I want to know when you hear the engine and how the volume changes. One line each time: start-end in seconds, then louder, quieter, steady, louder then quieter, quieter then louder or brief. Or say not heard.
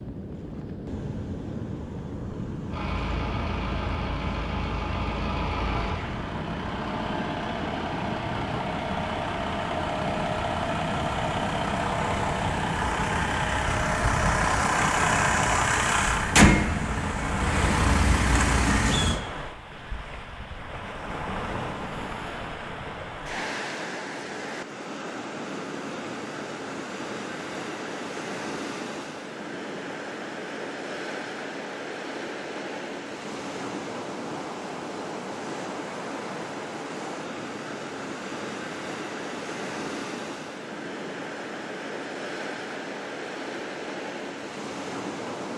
2.6-19.2 louder.